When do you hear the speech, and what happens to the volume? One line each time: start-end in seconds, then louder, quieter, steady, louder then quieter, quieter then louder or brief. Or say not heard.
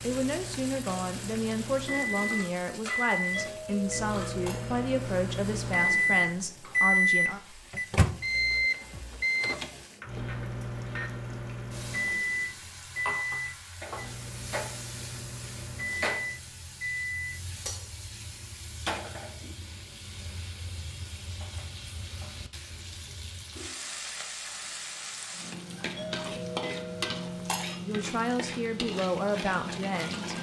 0.0-7.4 steady
27.8-30.3 brief.